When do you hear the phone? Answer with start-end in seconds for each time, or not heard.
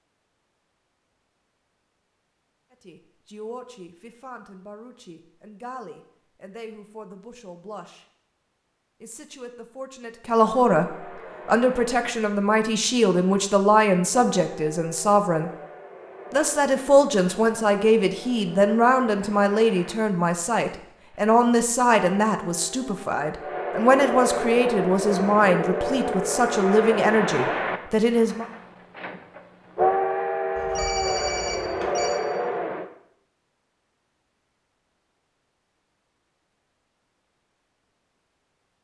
30.6-32.2.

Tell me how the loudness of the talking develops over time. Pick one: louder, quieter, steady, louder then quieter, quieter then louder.
louder.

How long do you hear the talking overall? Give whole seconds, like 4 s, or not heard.
24 s.